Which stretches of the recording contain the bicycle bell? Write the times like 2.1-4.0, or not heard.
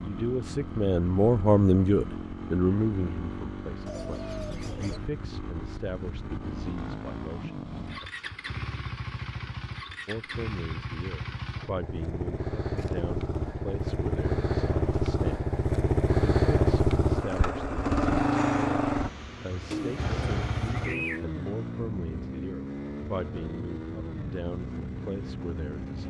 not heard.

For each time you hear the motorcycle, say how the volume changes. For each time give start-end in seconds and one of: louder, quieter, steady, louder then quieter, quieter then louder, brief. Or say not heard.
0.0-26.0 louder then quieter.